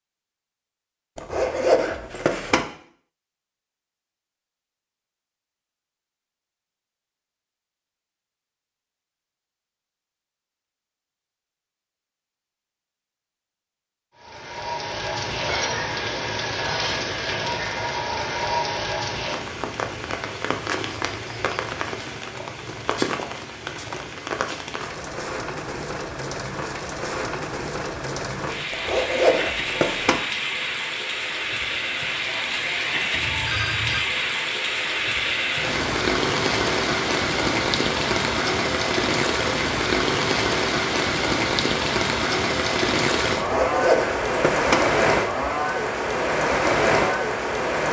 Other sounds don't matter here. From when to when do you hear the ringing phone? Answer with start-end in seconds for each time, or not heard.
33.1-34.0.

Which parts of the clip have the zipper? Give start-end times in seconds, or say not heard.
1.1-2.6, 28.7-30.2, 43.4-44.8.